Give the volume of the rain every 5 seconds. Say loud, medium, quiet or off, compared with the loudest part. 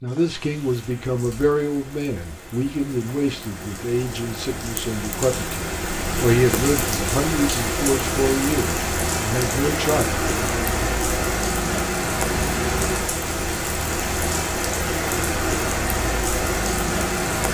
quiet, loud, loud, loud.